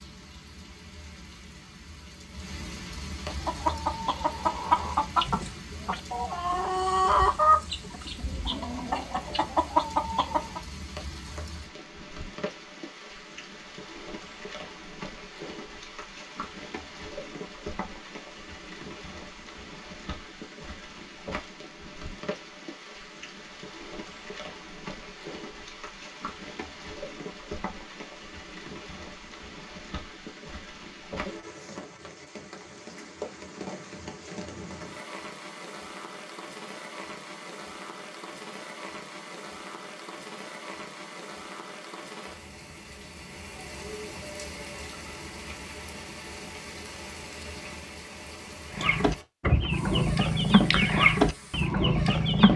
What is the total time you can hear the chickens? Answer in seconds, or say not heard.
11 s.